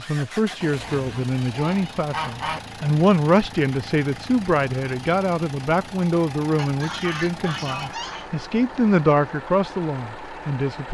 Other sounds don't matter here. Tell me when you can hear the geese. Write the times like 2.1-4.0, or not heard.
0.6-2.6, 6.5-8.3.